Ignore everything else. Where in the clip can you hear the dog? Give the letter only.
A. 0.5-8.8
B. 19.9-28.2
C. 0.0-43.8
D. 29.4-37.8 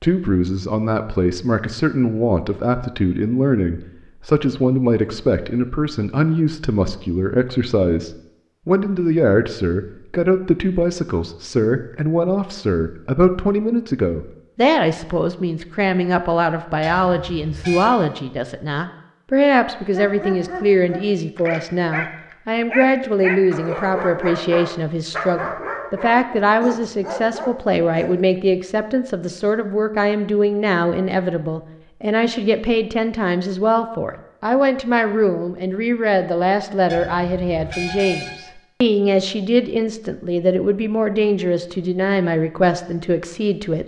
B.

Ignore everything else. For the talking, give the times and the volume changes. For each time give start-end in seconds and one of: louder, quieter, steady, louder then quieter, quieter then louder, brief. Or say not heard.
0.0-43.8 steady.